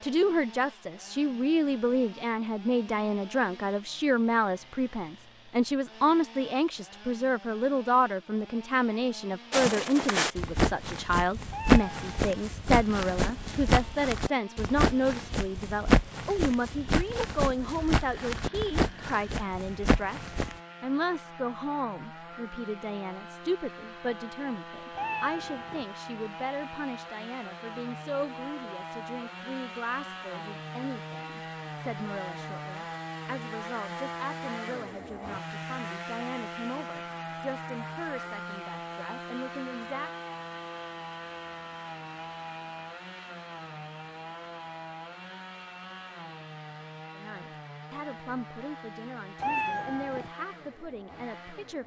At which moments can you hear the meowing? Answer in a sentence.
You can hear the meowing from 11.5 to 12.3 s, from 24.9 to 25.9 s and from 49.4 to 50.3 s.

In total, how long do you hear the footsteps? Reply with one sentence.
The footsteps can be heard for 11 seconds in total.